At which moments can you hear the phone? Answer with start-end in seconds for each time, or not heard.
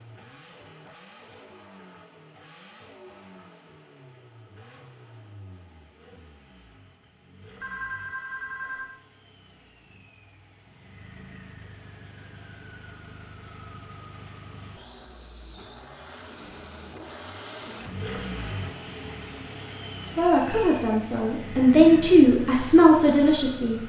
7.6-8.9.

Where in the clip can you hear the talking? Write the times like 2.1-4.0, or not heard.
20.1-23.8.